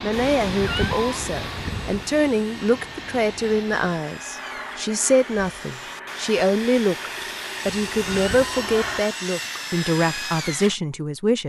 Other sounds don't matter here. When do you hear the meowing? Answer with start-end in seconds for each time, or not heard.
0.3-2.0, 7.7-9.1.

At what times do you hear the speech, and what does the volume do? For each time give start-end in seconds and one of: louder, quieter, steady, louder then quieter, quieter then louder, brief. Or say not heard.
0.0-11.4 steady.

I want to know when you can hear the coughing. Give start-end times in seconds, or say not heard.
not heard.